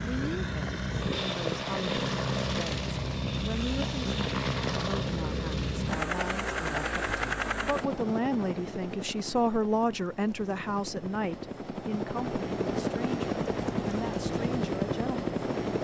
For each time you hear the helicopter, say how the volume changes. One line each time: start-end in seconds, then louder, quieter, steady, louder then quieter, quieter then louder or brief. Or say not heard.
0.0-15.7 quieter then louder.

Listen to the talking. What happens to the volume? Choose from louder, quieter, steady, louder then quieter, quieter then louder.
louder then quieter.